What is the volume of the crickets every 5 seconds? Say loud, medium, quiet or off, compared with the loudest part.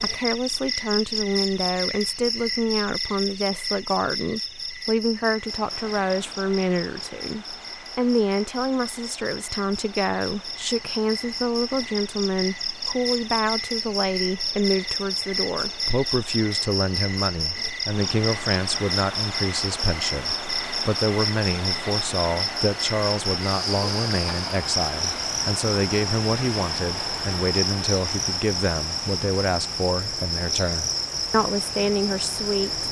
loud, medium, loud, loud, loud, loud, loud.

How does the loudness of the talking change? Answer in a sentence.
The loudness of the talking stays about the same.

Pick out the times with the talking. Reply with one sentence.
You can hear the talking from 0.0 to 32.8 s.